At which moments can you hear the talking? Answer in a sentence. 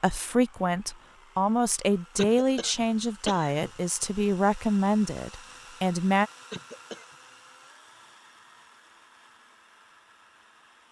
The talking can be heard from 0.0 to 6.3 s.